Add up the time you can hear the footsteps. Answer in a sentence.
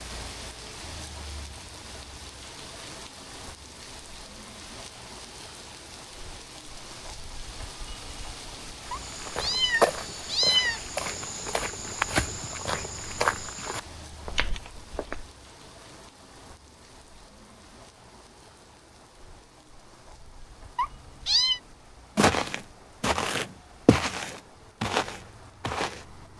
You can hear the footsteps for 10 seconds altogether.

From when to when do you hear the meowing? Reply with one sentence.
The meowing can be heard from 8.9 to 10.8 s and from 20.8 to 21.6 s.